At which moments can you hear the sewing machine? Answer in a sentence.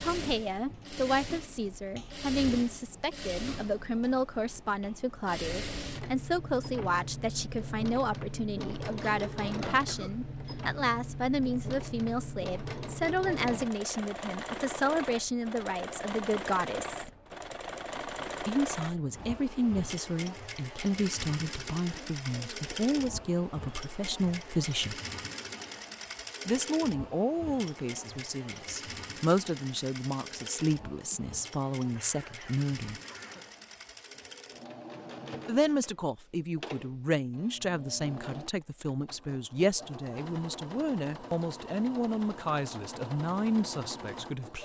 You can hear the sewing machine from 0.0 to 44.6 s.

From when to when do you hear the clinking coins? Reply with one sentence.
You can't hear the clinking coins here.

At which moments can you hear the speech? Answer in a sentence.
You can hear the speech from 0.0 to 17.1 s, from 18.4 to 25.0 s, from 26.4 to 33.0 s and from 35.5 to 44.6 s.